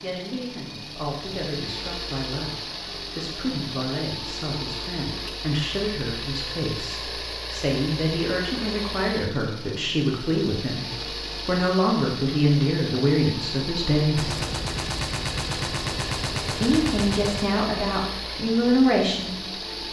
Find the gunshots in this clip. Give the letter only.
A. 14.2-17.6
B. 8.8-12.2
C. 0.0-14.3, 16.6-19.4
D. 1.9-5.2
A.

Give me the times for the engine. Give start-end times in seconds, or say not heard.
0.0-19.8.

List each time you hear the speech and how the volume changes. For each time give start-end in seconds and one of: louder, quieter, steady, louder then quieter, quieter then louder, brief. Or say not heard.
0.0-14.3 louder
16.6-19.4 brief.